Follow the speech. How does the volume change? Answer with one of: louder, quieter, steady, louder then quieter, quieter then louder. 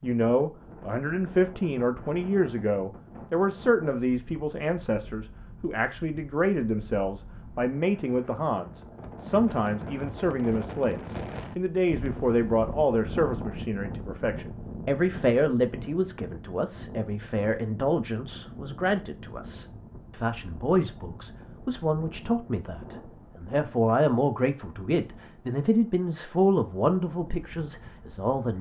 steady.